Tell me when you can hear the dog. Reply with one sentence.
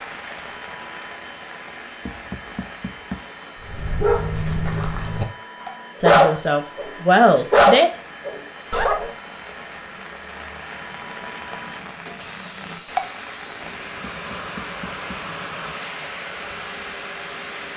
You can hear the dog from 3.6 to 5.2 s, from 6.0 to 6.9 s and from 7.5 to 9.1 s.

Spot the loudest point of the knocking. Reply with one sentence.
The volume of the knocking peaks at 3 seconds.